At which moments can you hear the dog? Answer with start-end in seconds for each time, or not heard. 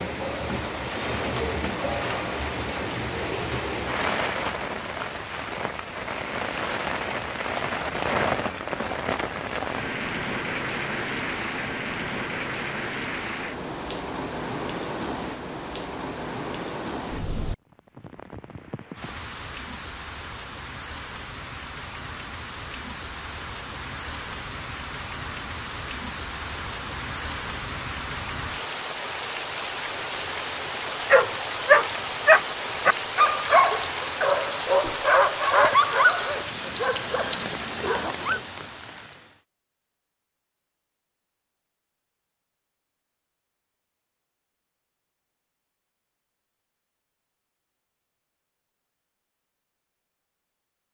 31.1-38.4.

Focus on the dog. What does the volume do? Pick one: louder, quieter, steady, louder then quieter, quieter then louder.
quieter.